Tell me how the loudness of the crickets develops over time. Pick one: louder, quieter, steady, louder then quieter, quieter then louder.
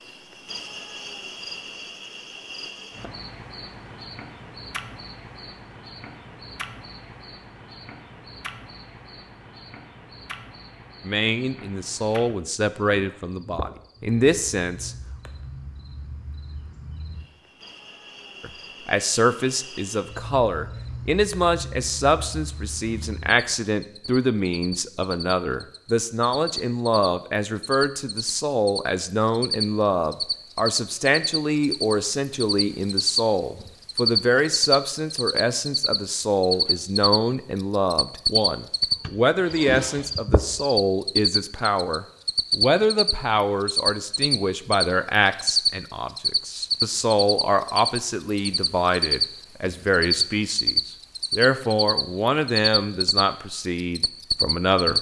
louder.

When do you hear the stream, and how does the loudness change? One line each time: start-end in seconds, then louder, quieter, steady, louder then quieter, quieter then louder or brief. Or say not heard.
not heard.